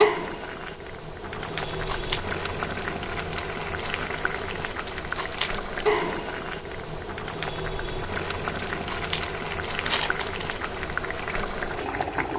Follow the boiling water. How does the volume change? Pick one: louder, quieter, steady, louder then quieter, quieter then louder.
steady.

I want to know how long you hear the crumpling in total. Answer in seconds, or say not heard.
4 s.